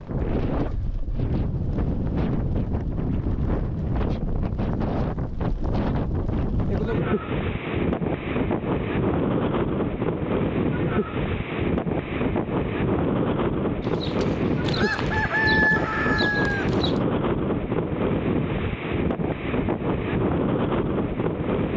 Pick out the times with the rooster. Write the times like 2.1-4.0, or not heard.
13.8-17.0.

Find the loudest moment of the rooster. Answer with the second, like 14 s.
16 s.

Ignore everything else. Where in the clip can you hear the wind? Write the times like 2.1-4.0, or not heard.
0.0-21.7.